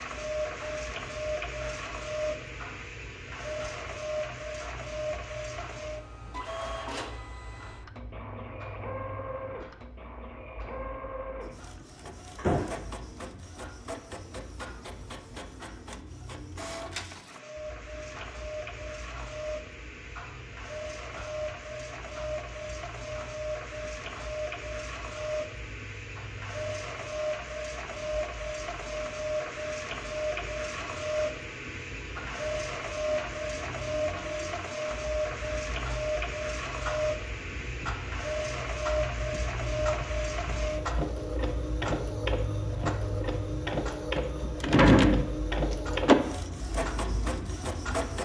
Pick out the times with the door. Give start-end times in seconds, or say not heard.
12.3-12.8, 44.1-46.1.